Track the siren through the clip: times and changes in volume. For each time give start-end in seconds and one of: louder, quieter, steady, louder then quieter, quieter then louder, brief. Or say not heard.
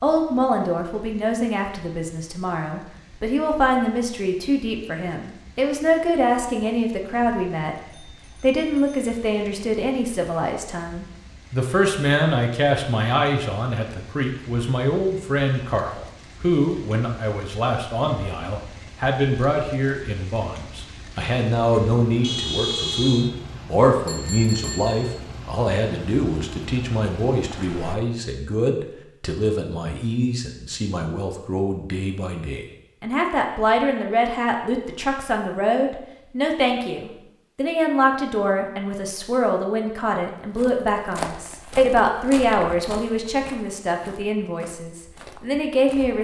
not heard.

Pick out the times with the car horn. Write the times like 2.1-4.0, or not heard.
22.2-23.3.